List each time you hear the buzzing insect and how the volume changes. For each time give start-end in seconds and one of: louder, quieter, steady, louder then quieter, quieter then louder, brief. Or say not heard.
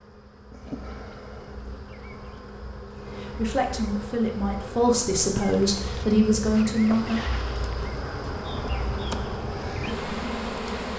0.0-10.9 louder.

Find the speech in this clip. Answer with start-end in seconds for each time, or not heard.
3.1-7.2.